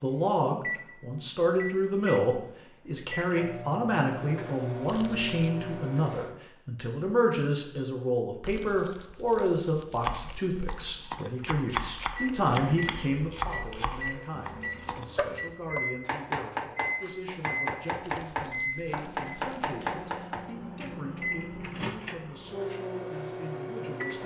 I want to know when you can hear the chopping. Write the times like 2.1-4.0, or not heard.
10.0-20.5.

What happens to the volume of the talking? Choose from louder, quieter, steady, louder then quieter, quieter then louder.
quieter.